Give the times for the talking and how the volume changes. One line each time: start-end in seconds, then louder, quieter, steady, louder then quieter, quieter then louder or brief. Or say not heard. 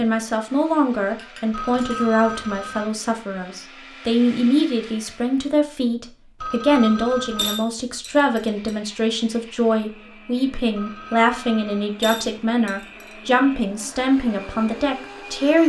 0.0-15.6 steady.